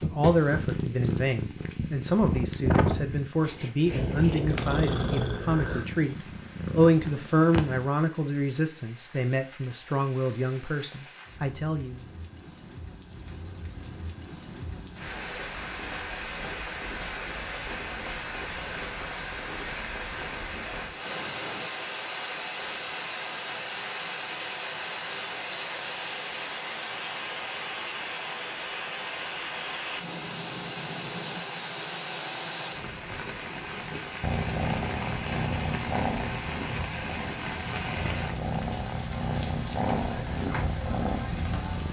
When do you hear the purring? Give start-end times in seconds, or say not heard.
0.0-7.8, 34.2-41.8.